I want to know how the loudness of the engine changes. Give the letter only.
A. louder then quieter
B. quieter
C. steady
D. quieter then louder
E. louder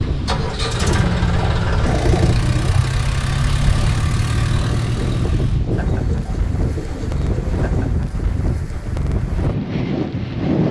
C.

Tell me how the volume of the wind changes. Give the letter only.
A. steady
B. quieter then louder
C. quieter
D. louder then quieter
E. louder
A.